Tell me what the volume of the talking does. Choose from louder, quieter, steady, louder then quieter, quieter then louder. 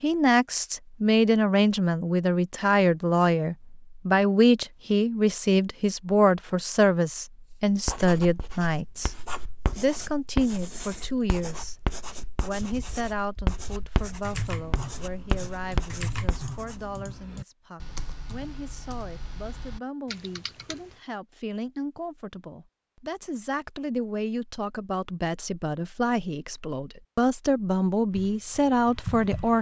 quieter then louder.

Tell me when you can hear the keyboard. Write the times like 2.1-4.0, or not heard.
12.5-20.9, 28.1-29.5.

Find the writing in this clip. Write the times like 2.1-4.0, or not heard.
7.8-16.8.